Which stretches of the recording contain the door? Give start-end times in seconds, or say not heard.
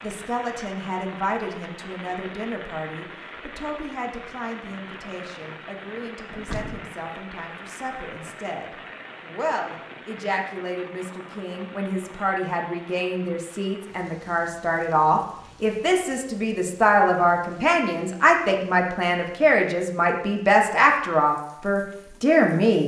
6.3-7.0.